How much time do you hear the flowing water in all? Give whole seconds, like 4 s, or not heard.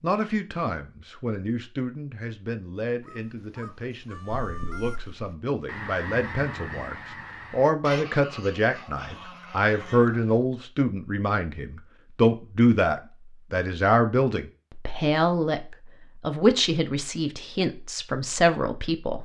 not heard.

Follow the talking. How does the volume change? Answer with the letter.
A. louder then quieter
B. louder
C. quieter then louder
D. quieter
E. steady
B.